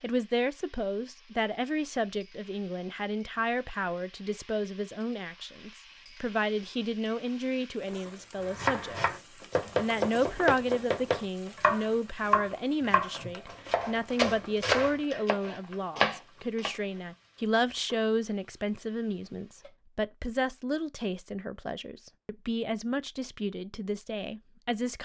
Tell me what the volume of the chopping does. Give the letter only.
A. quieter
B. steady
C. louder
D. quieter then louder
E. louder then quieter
B.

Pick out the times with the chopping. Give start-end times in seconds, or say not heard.
8.4-16.7.